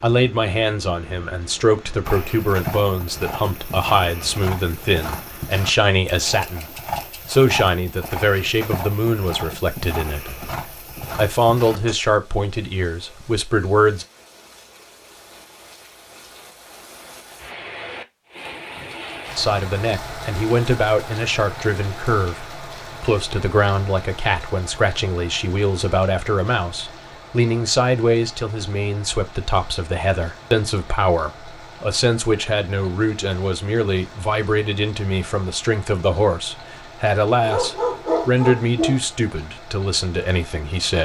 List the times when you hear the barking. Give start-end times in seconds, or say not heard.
37.4-39.0.